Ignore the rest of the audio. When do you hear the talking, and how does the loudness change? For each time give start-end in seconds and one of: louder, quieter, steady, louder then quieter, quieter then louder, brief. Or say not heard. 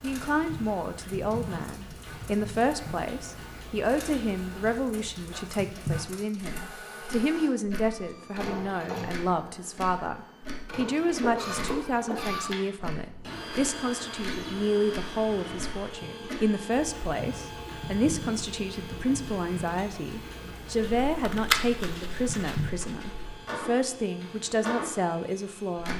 0.0-25.9 steady.